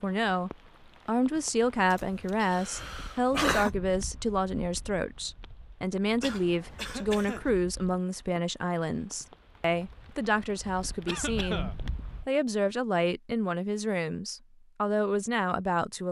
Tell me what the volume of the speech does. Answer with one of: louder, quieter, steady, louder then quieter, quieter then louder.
steady.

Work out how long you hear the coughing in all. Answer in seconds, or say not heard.
4 s.